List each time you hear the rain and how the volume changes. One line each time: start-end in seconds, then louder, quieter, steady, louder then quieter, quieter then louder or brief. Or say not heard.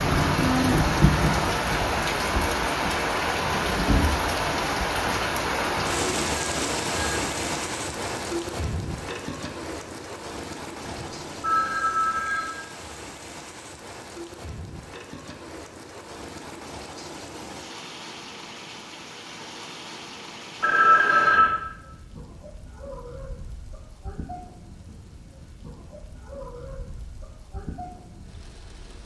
0.0-29.0 quieter.